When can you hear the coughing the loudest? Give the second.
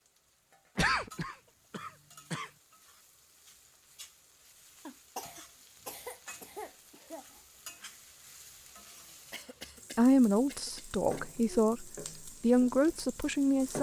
1 s.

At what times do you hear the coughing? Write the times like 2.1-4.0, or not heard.
0.8-2.5, 4.8-7.4, 9.3-11.2.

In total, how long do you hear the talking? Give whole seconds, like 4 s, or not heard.
4 s.